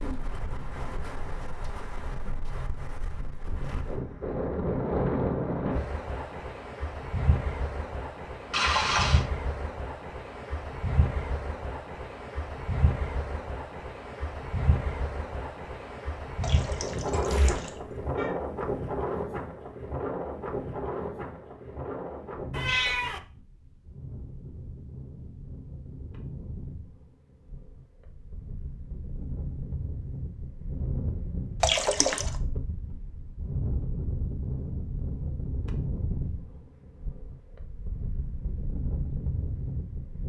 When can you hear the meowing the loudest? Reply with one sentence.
The volume of the meowing peaks at 23 seconds.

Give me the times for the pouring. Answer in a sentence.
The pouring can be heard from 8.5 to 9.2 s, from 16.4 to 17.7 s and from 31.6 to 32.3 s.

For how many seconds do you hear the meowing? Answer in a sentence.
The meowing can be heard for 2 seconds in total.